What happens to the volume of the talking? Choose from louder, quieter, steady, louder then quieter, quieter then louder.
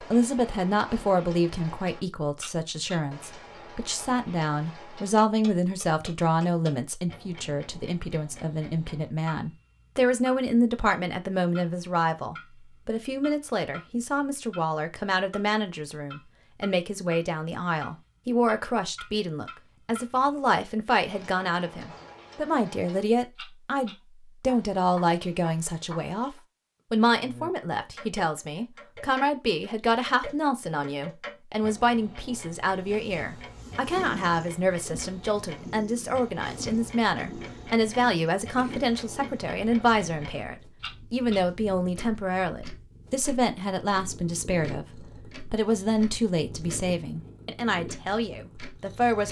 steady.